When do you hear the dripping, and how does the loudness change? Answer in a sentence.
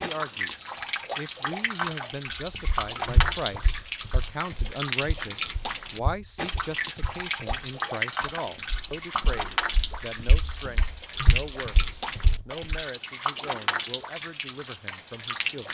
The dripping can be heard from 0.0 to 15.6 s, at a steady volume.